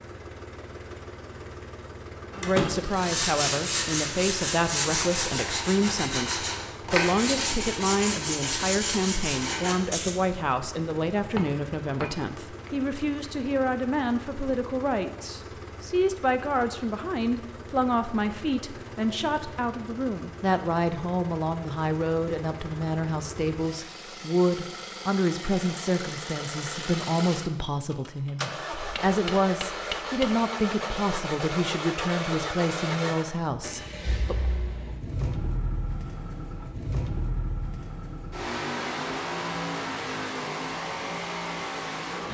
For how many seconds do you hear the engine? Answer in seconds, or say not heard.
42 s.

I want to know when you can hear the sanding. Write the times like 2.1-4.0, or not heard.
2.3-10.1.